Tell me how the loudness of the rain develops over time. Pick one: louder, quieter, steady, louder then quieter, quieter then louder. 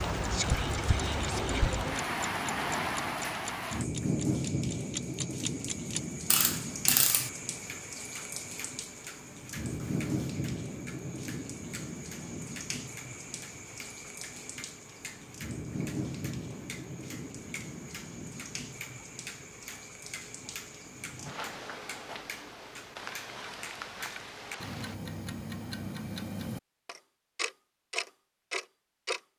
quieter.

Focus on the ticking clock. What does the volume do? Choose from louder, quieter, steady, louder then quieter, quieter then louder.
quieter then louder.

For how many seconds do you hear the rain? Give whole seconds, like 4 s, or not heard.
25 s.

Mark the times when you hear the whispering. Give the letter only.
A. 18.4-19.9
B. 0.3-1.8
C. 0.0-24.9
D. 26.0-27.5
B.